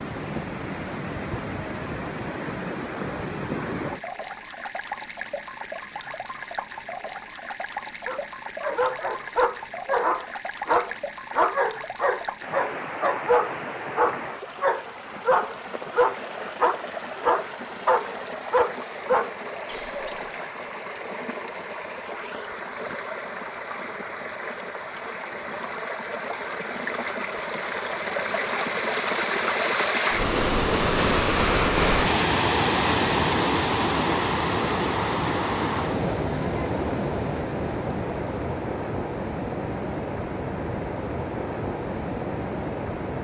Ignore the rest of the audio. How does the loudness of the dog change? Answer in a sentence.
The volume of the dog stays about the same.